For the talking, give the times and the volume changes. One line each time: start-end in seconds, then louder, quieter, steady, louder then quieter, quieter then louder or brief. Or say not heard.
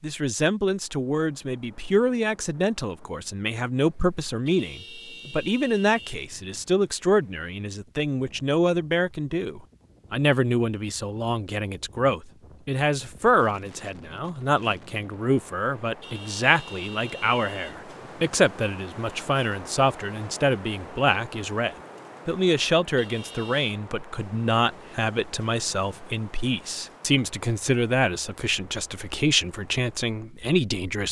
0.0-31.0 steady.